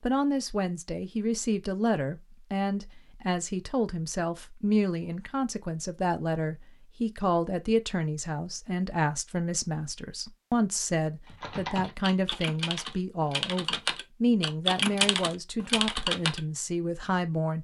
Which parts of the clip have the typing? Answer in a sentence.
You can hear the typing from 11.2 to 16.4 s.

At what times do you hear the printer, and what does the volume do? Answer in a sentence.
You can't hear the printer here.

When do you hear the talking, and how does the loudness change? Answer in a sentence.
You can hear the talking from 0.0 to 17.5 s, at a steady volume.